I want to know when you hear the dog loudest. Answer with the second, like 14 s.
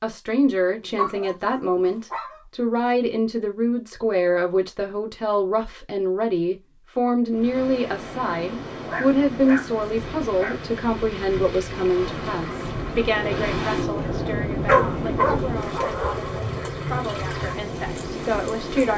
15 s.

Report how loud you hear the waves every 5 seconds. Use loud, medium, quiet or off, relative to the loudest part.
off, medium, loud, loud.